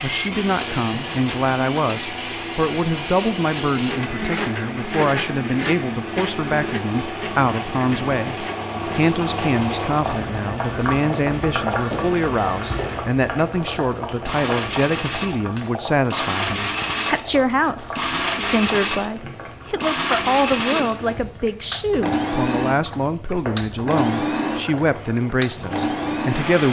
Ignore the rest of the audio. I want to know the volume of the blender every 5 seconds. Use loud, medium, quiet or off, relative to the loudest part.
loud, medium, medium, loud, loud, loud.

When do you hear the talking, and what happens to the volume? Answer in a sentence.
You can hear the talking from 0.0 to 26.6 s, at a steady volume.